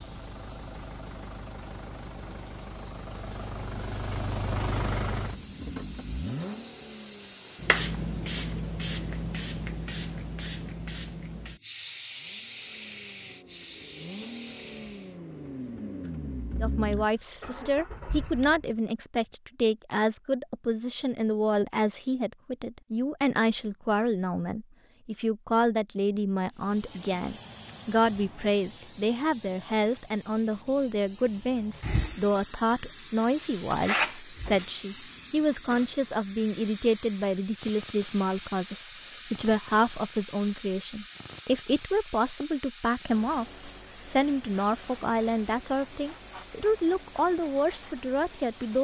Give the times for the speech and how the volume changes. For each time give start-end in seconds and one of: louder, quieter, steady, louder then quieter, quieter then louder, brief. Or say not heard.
16.6-48.7 steady.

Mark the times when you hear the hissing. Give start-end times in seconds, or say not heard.
0.0-15.2, 26.5-48.7.